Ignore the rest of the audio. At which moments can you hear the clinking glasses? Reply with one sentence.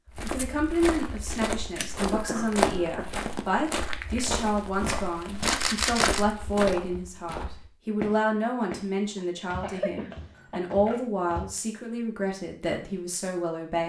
The clinking glasses can't be heard in this clip.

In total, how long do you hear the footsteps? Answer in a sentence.
You can hear the footsteps for 11 seconds altogether.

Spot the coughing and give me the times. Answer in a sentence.
The coughing can be heard from 2.0 to 3.0 s and from 9.2 to 10.7 s.